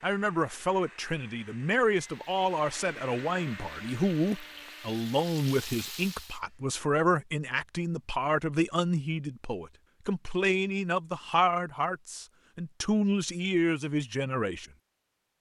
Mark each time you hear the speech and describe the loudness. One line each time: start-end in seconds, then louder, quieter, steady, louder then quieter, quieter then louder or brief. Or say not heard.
0.0-14.7 steady.